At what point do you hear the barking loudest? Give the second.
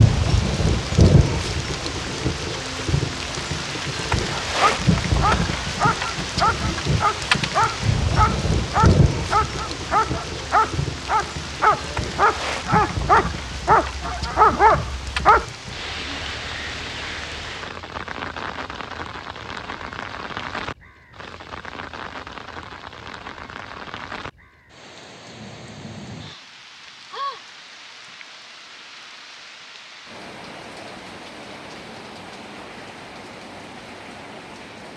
15 s.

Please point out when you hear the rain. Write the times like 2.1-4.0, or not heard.
0.0-34.9.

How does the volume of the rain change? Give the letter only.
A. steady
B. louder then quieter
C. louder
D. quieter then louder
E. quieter
E.